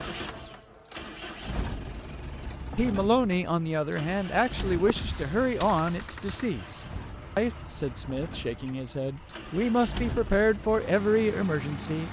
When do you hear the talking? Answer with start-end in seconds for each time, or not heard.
2.8-12.0.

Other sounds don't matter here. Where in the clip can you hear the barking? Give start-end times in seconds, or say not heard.
not heard.